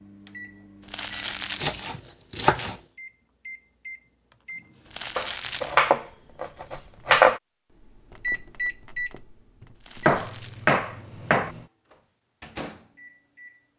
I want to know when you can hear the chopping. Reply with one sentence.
The chopping can be heard from 1.6 to 2.8 s, from 5.2 to 7.4 s and from 10.1 to 11.5 s.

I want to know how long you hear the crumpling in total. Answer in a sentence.
You can hear the crumpling for 3 seconds altogether.